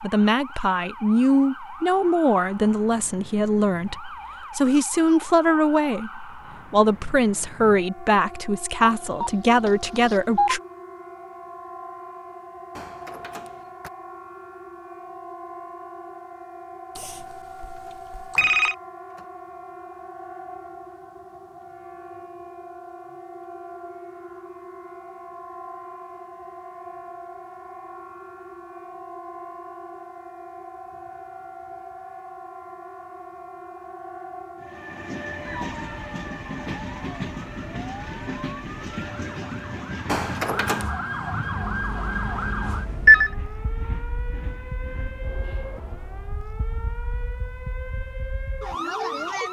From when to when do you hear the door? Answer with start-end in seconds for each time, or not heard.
12.7-13.9, 17.2-19.2, 40.0-40.9.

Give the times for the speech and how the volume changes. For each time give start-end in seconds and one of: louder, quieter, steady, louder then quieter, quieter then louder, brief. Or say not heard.
0.0-10.6 steady.